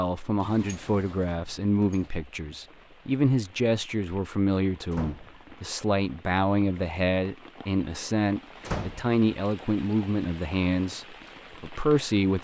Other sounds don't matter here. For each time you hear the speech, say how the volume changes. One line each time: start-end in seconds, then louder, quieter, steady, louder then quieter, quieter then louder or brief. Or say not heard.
0.0-12.3 steady.